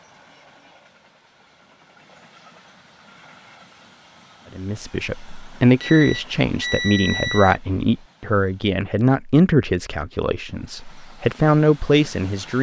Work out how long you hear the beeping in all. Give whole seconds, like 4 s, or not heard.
2 s.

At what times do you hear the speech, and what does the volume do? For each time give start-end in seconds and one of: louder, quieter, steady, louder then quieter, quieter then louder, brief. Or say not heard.
4.5-12.5 steady.